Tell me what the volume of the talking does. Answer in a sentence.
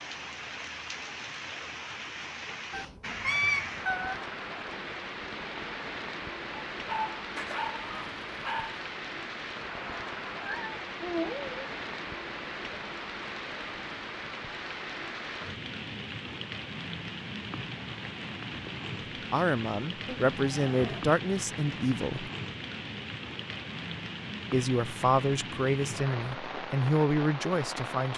The loudness of the talking stays about the same.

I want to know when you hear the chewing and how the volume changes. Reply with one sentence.
The chewing can't be heard in this clip.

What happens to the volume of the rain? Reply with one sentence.
The loudness of the rain stays about the same.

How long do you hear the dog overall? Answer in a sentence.
You can hear the dog for 2 seconds altogether.